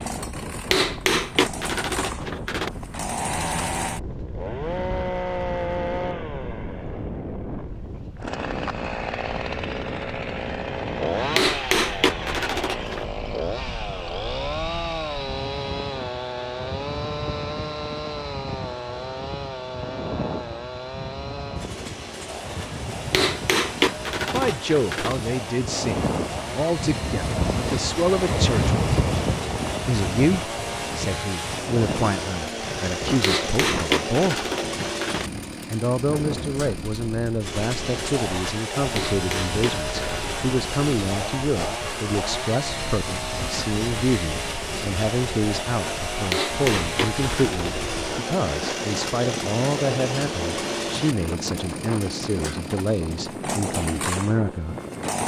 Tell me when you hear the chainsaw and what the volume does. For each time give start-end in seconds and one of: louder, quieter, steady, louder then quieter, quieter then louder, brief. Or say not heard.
0.0-55.2 steady.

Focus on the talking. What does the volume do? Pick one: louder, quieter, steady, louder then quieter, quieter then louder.
steady.